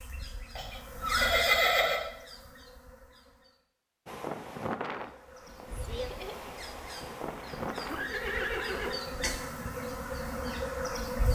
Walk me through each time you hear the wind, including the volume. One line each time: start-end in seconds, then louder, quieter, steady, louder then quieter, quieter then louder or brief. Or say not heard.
4.0-11.1 quieter.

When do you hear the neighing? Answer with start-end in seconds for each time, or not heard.
0.6-2.0, 7.2-9.0.